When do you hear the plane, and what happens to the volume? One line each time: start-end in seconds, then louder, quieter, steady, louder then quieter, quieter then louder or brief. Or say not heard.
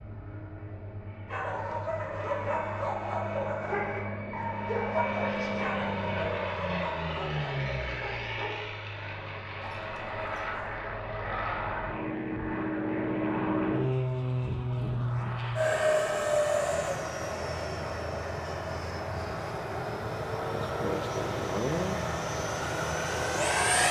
0.0-23.8 louder.